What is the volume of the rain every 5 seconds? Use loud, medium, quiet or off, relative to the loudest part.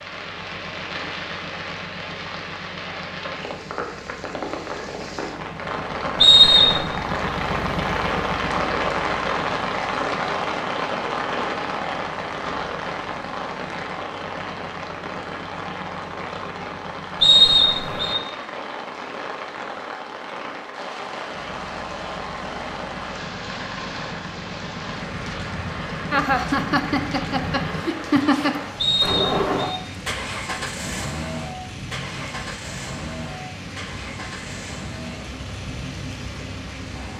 medium, loud, loud, medium, medium, medium, medium, medium.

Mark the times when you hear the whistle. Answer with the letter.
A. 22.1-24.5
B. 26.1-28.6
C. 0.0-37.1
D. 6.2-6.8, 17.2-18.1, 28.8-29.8
D.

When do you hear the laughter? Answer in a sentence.
The laughter can be heard from 26.1 to 28.6 s.